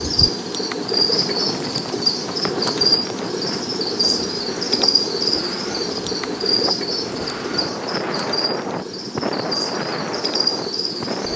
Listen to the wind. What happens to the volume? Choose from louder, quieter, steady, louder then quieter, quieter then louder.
louder.